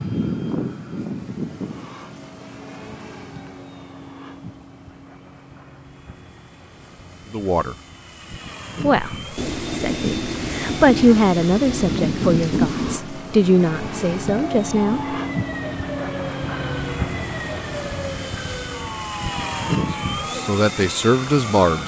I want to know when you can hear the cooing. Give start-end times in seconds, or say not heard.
not heard.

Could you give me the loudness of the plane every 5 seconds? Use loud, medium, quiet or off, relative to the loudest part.
loud, medium, loud, loud, loud.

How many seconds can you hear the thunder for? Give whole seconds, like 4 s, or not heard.
4 s.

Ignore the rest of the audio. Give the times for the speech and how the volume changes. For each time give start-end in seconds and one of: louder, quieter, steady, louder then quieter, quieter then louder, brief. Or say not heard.
7.3-7.8 brief
8.8-15.2 louder then quieter
20.4-21.8 brief.